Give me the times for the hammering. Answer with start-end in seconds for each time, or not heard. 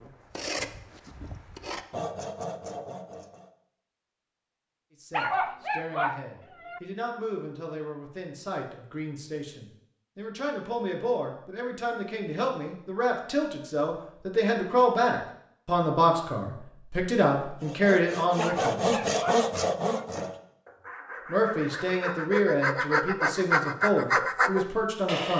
not heard.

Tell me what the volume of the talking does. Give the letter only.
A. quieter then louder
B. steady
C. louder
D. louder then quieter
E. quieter
C.